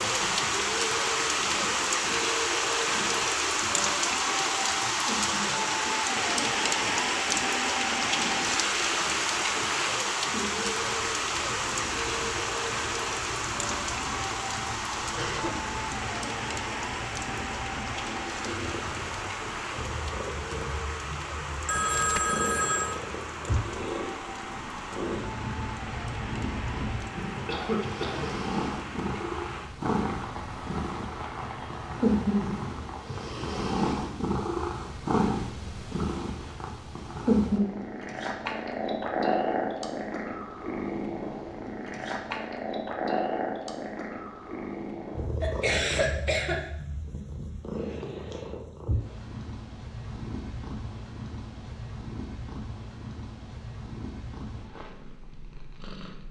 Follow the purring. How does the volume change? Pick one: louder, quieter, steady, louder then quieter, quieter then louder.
louder then quieter.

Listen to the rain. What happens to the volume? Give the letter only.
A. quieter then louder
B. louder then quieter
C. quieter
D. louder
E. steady
C.